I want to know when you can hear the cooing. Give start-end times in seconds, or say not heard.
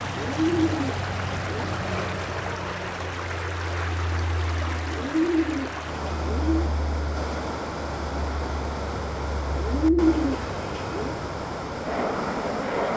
0.2-1.8, 4.8-6.7, 9.6-11.2.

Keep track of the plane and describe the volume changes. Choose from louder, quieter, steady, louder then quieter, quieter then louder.
quieter then louder.